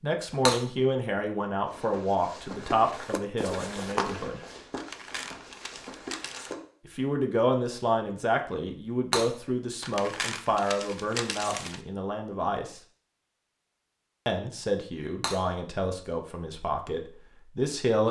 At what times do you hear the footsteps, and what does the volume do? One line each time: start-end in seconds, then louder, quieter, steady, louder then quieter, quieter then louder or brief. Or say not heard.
1.6-6.5 louder then quieter.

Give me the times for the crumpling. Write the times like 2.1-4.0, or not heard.
4.8-6.5, 9.8-11.8.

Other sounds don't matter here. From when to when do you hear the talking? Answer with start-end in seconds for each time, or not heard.
0.0-4.4, 6.8-12.8, 14.2-18.0.